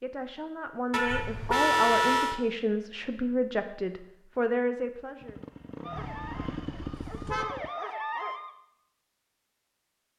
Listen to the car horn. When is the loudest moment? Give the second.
2 s.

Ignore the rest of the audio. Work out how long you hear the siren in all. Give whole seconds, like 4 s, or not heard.
3 s.